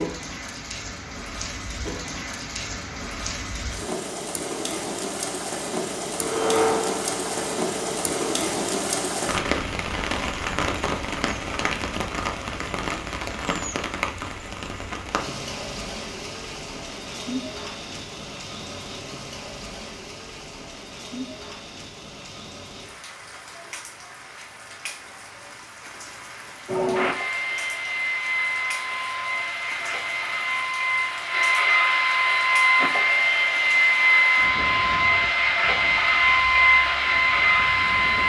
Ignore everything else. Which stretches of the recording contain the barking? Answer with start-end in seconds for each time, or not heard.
not heard.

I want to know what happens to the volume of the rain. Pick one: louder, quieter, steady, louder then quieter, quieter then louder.
quieter.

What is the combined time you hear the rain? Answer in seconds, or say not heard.
38 s.